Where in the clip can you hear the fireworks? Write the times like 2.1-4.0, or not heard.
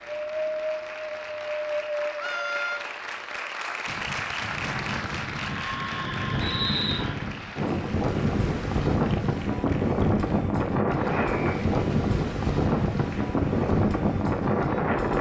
not heard.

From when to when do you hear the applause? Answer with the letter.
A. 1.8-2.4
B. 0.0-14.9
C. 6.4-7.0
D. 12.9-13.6
B.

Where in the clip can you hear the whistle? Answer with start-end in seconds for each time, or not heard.
6.4-7.0.